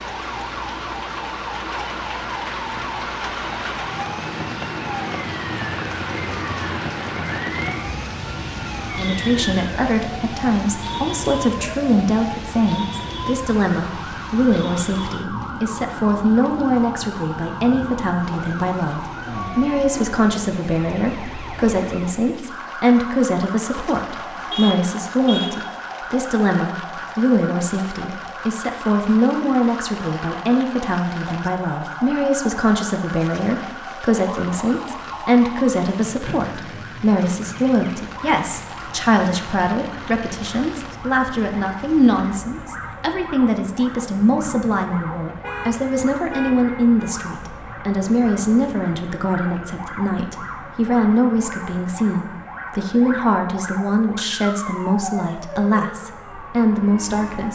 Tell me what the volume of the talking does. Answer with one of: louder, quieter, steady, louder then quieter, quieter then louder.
steady.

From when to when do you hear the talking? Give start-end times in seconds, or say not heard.
8.8-57.4.